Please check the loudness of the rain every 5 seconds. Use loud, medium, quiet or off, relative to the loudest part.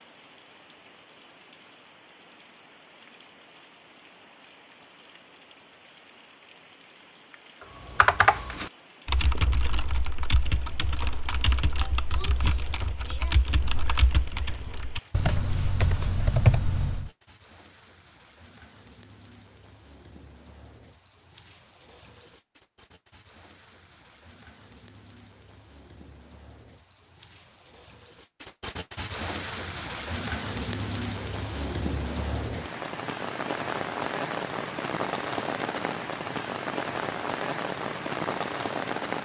quiet, quiet, quiet, quiet, quiet, medium, loud, loud.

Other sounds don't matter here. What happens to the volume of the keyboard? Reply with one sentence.
The loudness of the keyboard goes down, then up.